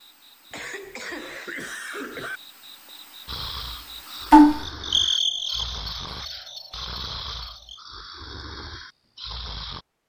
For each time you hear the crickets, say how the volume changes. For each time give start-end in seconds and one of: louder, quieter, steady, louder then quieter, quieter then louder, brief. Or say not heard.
0.0-7.8 louder then quieter.